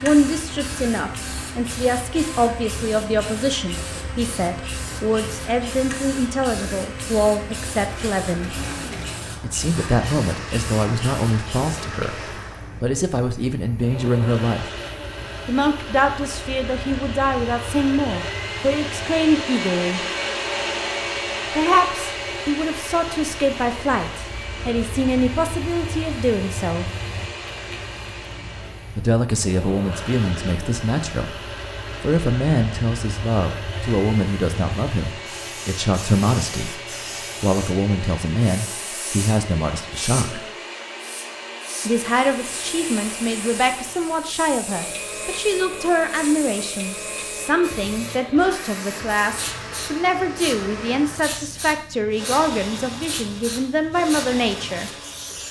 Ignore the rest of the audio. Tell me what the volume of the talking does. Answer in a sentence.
The loudness of the talking stays about the same.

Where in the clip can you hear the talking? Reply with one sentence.
The talking can be heard from 0.0 to 8.6 s, from 9.4 to 14.7 s, from 15.4 to 20.1 s, from 21.6 to 26.9 s, from 28.9 to 40.5 s and from 41.9 to 54.9 s.